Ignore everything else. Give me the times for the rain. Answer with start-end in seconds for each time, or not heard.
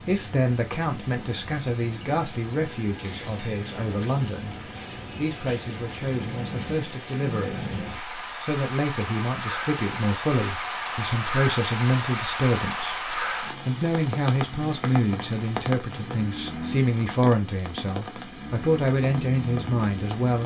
0.0-20.4.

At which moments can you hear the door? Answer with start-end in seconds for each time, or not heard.
3.0-3.8.